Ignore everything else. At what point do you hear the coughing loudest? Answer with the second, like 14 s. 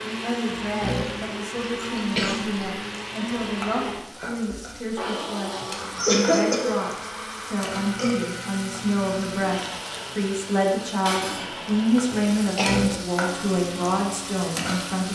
6 s.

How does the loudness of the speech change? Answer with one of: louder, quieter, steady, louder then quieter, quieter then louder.
louder.